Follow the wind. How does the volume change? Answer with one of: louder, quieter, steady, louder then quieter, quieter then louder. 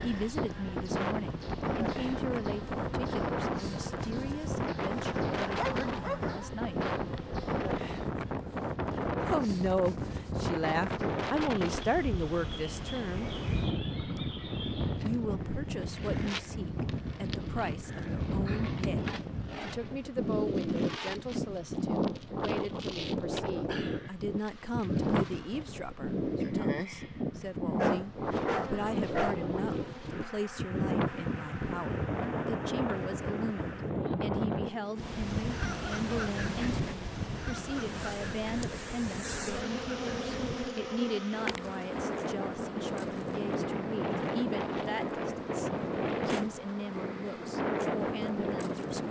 steady.